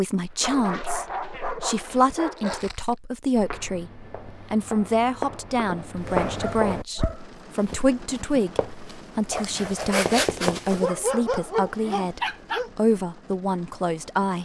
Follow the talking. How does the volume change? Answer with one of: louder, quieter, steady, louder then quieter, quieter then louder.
steady.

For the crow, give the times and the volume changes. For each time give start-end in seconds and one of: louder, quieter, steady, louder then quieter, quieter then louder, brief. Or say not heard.
not heard.